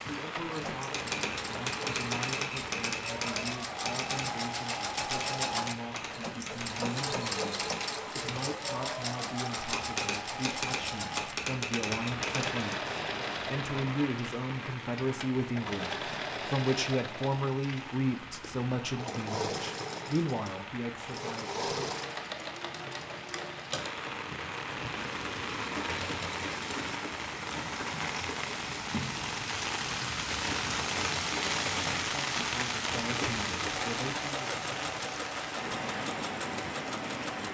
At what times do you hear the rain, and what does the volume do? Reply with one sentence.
You can hear the rain from 0.0 to 37.5 s, getting louder.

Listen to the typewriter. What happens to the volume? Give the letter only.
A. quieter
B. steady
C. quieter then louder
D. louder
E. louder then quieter
C.